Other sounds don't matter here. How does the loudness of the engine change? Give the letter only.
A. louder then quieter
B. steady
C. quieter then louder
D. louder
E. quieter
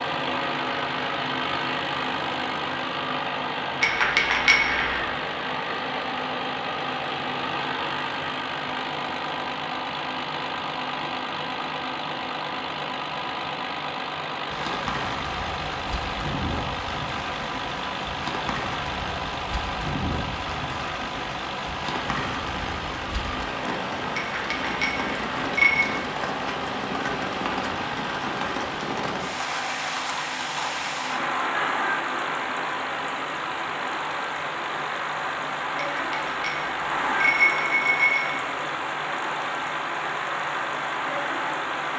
E.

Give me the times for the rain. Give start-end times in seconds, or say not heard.
14.5-41.9.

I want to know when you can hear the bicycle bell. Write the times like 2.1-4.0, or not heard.
3.8-5.0, 24.1-25.9, 35.8-38.4.